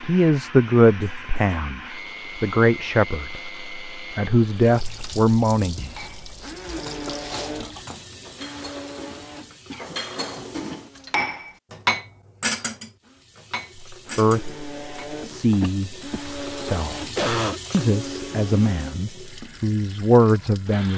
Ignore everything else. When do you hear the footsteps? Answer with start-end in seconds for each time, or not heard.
not heard.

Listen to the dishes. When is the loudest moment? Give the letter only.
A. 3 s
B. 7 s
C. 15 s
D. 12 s
D.